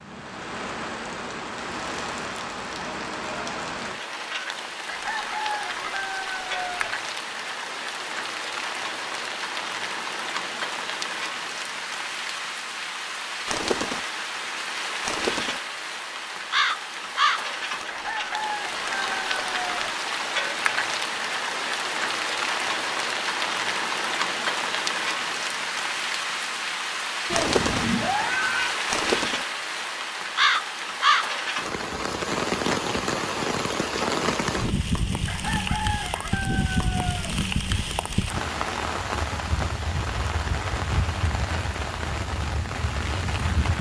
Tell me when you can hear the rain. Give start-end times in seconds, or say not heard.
0.0-43.7.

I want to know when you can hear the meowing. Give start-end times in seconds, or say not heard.
27.2-28.8.